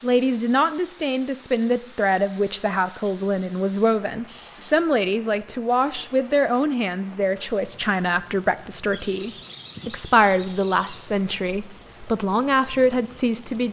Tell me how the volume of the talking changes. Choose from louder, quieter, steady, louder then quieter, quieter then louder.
steady.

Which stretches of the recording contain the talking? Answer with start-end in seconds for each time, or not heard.
0.0-13.6.